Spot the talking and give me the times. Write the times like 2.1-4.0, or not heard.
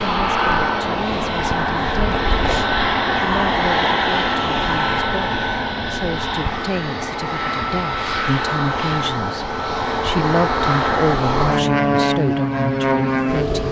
0.0-2.2, 3.0-13.6.